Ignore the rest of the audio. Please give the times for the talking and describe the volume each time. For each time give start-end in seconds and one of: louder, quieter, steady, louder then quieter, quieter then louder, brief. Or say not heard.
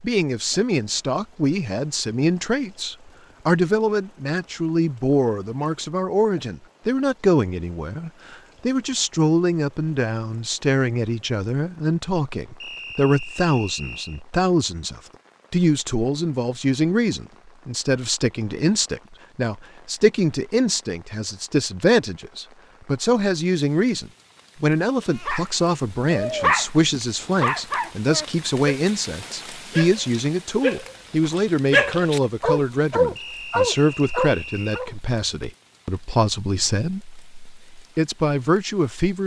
0.0-39.2 steady.